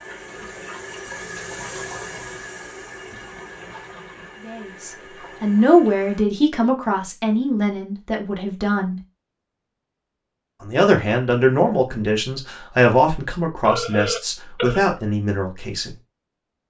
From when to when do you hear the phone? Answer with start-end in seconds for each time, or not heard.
13.6-14.9.